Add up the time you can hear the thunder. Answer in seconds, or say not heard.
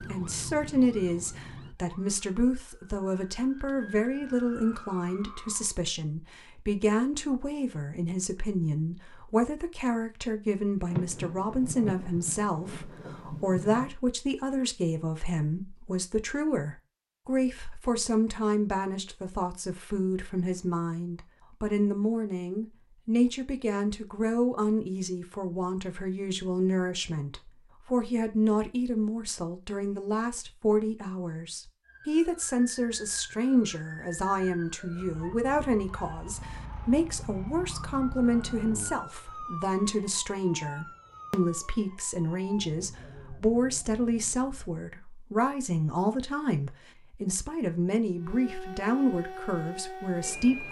3 s.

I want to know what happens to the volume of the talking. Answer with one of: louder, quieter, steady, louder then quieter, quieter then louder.
steady.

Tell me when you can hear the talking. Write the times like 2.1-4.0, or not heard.
0.1-50.6.